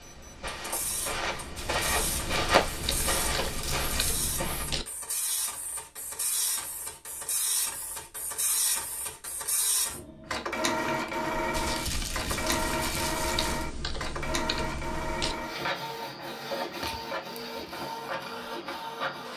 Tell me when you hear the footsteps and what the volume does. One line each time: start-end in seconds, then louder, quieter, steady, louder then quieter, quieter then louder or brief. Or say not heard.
0.0-4.7 louder then quieter.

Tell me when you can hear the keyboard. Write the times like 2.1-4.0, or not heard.
2.8-4.8, 13.3-15.3.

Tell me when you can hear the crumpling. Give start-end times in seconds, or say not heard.
1.6-4.2, 11.5-13.7.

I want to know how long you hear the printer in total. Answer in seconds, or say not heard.
19 s.